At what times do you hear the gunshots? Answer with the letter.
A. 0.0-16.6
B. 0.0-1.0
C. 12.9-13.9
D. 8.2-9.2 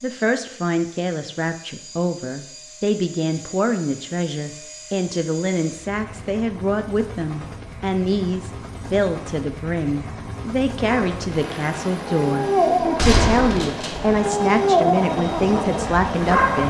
C.